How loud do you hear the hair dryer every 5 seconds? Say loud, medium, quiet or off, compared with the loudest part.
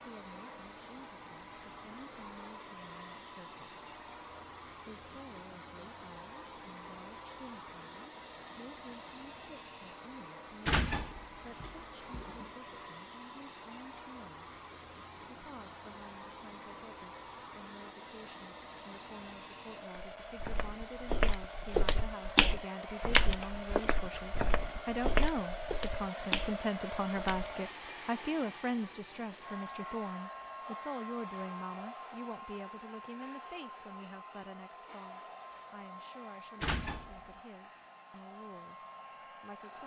medium, medium, medium, medium, loud, loud, loud, medium.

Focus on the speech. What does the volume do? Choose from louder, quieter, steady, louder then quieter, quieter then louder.
louder then quieter.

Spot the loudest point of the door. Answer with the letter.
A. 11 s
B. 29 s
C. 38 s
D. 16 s
A.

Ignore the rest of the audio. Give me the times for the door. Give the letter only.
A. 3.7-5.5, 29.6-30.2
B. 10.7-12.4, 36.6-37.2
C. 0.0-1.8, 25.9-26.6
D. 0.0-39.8
B.